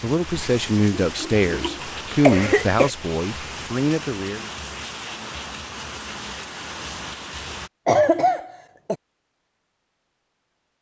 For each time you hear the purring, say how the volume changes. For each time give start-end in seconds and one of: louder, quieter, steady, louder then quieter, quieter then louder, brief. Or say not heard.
not heard.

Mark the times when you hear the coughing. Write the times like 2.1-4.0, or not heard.
1.0-2.9, 7.8-8.9.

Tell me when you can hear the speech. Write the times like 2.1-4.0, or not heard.
0.0-4.5.